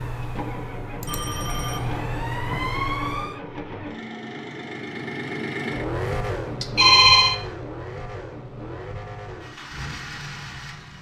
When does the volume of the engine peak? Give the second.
6 s.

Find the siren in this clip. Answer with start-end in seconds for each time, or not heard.
0.0-3.4.